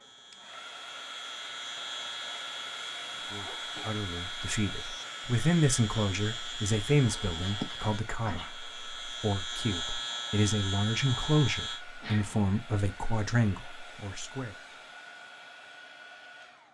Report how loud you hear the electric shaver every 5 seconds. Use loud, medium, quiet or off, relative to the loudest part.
medium, loud, loud, off.